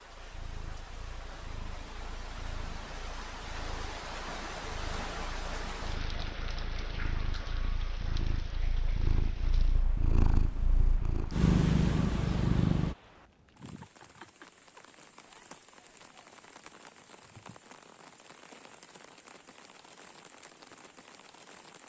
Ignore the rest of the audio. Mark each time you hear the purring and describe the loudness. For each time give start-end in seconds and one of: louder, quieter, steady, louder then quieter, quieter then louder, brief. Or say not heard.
0.1-12.9 louder.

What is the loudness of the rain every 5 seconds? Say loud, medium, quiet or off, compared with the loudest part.
loud, loud, medium, medium, medium.